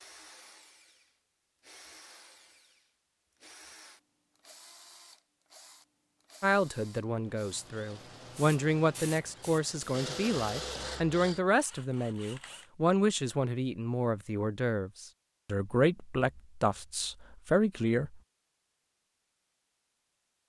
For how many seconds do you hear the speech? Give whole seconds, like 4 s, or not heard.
12 s.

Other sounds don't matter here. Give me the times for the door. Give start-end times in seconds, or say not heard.
not heard.